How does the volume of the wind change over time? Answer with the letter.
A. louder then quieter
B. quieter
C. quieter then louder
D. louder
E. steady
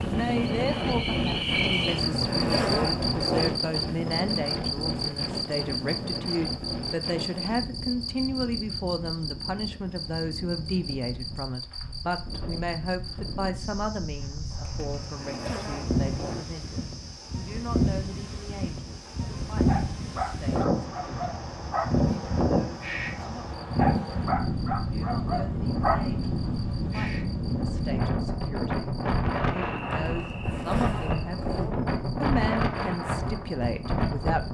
C.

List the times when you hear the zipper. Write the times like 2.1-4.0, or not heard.
1.6-3.5, 14.5-16.4, 30.0-31.7.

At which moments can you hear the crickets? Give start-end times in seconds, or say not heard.
0.0-34.4.